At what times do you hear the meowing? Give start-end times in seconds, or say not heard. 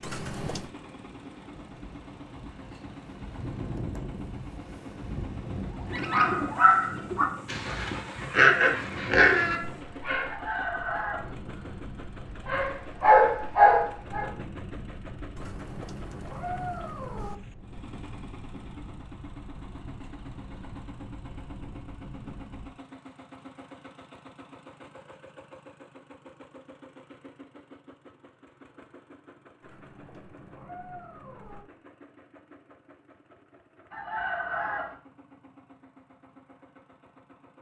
0.0-0.7, 15.3-17.4, 29.6-31.6.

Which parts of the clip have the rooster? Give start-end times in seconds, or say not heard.
10.2-11.3, 33.9-35.0.